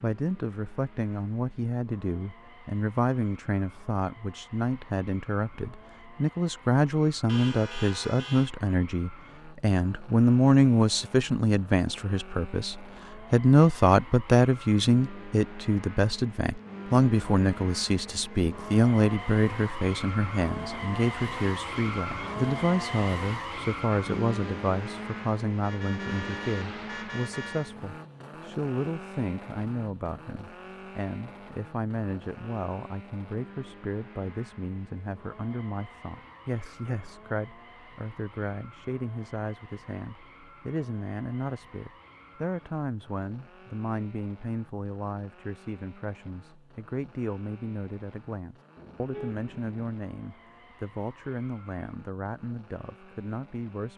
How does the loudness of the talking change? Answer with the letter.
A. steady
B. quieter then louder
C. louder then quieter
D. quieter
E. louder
D.